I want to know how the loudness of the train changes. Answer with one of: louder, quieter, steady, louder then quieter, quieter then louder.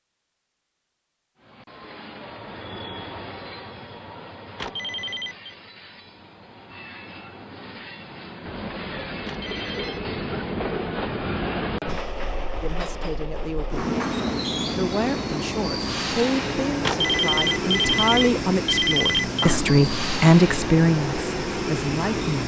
louder.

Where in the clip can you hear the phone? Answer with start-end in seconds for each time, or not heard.
4.5-5.5, 9.2-10.0, 16.8-19.6.